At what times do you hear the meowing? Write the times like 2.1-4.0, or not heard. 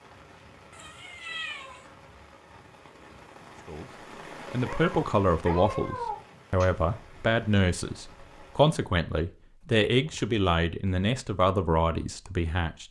0.7-1.9, 4.7-6.7, 9.9-10.9.